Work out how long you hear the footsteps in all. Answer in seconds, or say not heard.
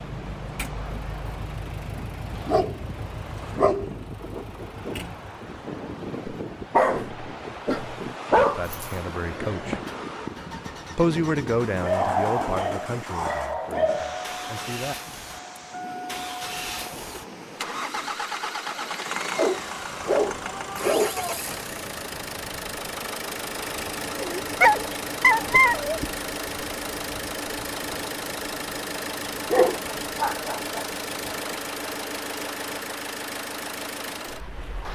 not heard.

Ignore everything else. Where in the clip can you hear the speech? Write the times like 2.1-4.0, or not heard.
8.6-9.8, 10.9-14.9.